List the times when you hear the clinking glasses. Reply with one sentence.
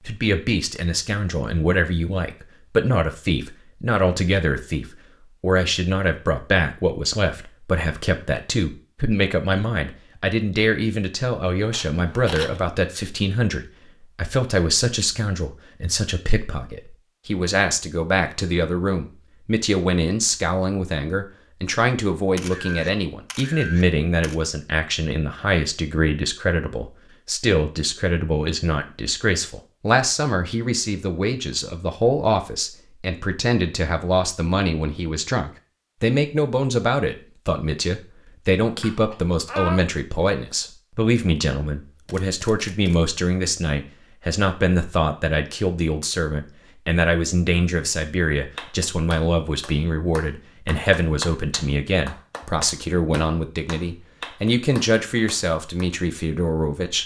The clinking glasses can be heard from 38.6 to 39.8 s.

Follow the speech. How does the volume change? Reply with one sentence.
The volume of the speech stays about the same.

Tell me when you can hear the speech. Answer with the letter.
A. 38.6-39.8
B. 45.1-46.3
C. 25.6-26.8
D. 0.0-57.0
D.